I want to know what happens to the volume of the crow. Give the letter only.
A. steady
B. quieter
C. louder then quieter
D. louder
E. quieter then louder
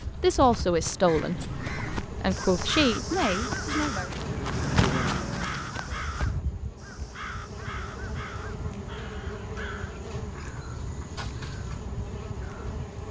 B.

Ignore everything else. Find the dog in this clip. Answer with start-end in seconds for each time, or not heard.
not heard.